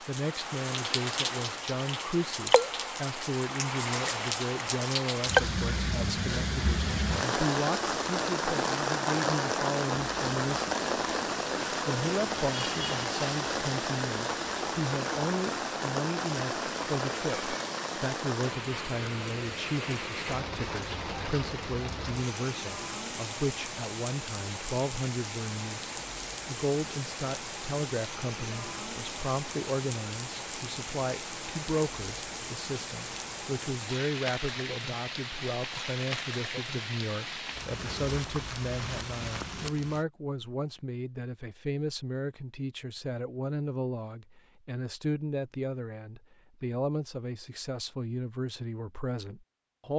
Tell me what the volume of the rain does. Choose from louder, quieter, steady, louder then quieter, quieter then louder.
quieter.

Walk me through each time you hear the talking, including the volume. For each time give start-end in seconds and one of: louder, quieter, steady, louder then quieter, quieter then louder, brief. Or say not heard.
0.0-10.8 steady
11.7-49.9 steady.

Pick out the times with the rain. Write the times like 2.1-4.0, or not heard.
0.0-40.0.